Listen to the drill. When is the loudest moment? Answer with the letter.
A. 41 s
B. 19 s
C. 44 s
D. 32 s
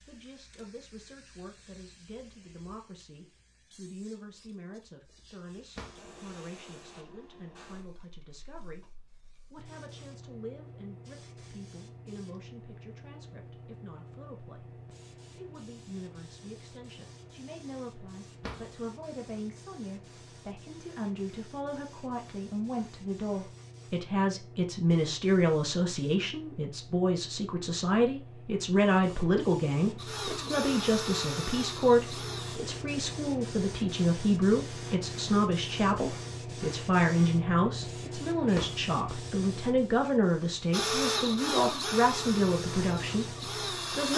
A.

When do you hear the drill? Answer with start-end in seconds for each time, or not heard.
29.9-32.6, 40.7-44.1.